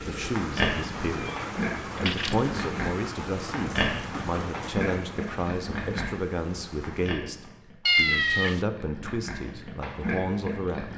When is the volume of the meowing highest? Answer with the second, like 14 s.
8 s.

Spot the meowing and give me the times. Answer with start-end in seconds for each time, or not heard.
1.1-2.4, 7.8-8.6.